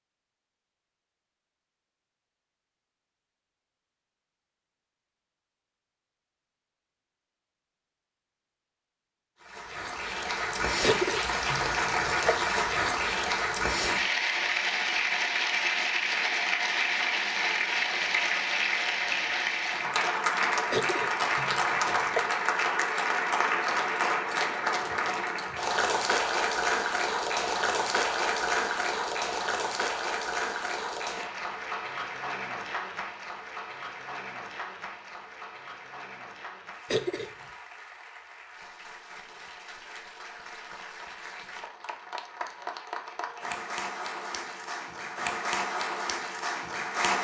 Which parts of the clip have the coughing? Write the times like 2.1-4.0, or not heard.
10.8-12.3, 20.7-22.2, 36.9-37.3.